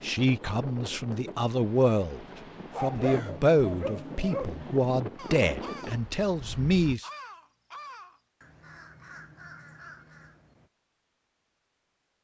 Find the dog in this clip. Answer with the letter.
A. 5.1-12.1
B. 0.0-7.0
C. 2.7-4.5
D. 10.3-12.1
C.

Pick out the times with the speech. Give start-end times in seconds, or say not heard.
0.0-7.0.